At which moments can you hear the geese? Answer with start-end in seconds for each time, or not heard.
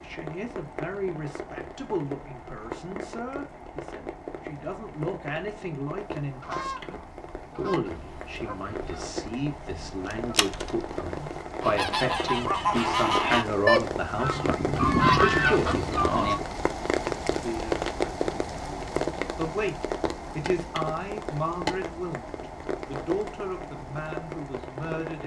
6.2-16.4.